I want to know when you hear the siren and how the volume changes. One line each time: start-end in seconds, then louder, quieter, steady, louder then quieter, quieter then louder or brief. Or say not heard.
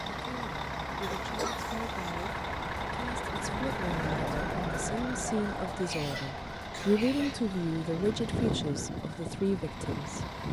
0.0-10.4 louder then quieter.